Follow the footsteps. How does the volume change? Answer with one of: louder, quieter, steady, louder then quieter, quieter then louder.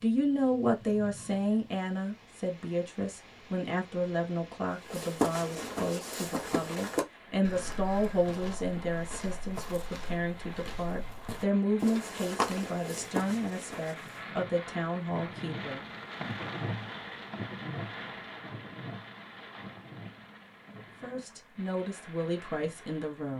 quieter then louder.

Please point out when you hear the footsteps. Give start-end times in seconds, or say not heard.
4.8-14.2.